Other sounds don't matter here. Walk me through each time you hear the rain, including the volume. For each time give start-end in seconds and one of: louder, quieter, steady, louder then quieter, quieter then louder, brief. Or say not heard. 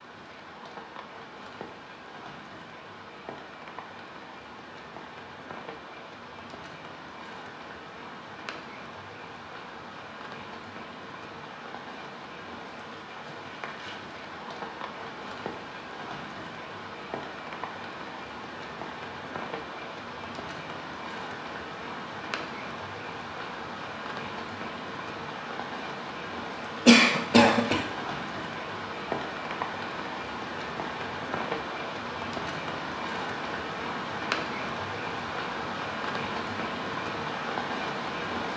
0.0-38.5 louder.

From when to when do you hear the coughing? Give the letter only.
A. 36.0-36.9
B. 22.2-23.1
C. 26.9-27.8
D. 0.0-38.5
C.